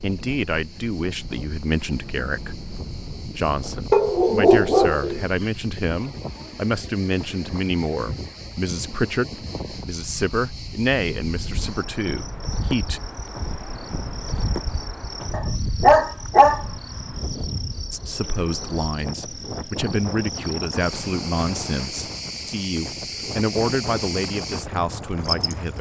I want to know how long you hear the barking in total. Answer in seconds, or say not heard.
3 s.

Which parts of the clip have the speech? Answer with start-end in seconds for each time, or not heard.
0.0-13.0, 17.9-25.7.